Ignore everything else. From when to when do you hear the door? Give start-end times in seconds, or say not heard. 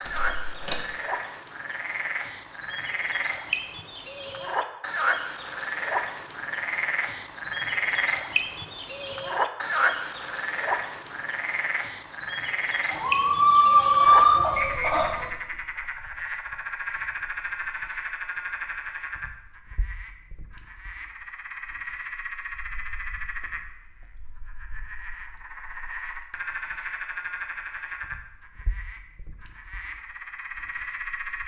0.0-0.9.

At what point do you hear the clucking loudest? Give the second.
14 s.